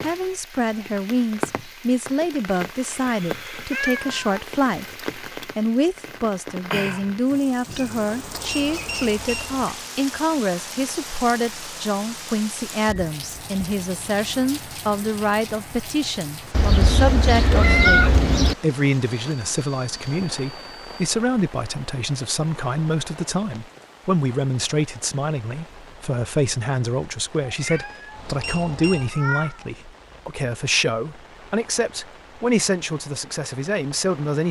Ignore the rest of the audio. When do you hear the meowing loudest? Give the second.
18 s.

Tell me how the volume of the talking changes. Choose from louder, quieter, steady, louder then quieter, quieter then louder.
steady.